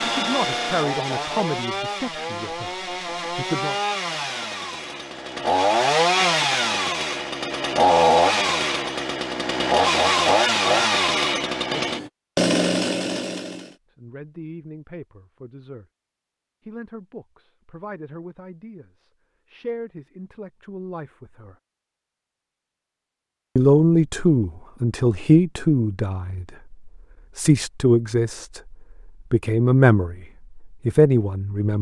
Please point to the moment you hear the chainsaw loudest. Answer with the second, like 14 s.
8 s.